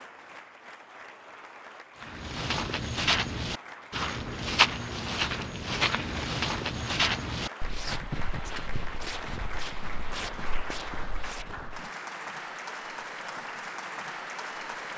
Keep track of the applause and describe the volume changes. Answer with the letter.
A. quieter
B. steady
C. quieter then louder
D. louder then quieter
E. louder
E.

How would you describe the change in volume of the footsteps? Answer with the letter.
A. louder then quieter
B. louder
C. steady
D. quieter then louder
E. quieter
E.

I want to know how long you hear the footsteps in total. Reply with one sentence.
The footsteps can be heard for 10 seconds in total.